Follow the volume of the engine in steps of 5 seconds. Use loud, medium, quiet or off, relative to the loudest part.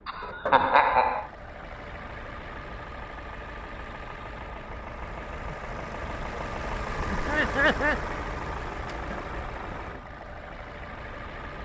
medium, loud, medium.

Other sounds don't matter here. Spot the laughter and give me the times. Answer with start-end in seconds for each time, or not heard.
0.1-1.2, 7.1-8.0.